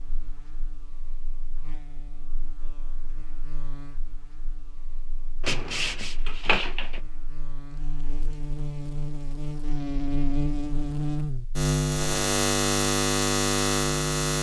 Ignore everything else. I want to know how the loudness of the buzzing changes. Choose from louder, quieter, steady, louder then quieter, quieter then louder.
louder.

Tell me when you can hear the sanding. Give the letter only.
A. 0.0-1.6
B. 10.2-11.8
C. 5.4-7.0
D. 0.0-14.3
C.